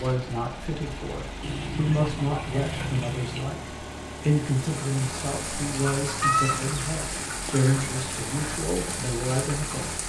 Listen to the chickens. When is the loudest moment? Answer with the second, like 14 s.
6 s.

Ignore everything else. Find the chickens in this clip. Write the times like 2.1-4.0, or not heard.
1.4-3.5, 5.8-7.7.